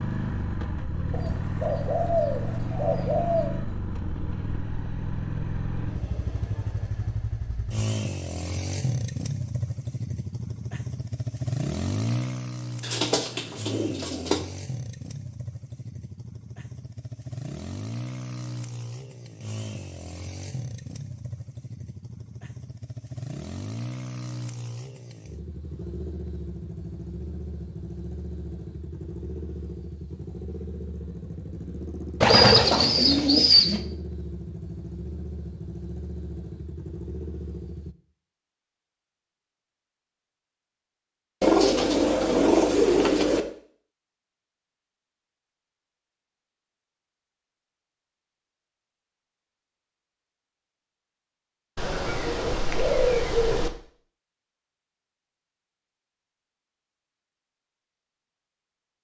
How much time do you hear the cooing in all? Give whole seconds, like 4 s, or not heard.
10 s.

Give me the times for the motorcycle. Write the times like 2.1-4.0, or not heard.
0.0-38.0.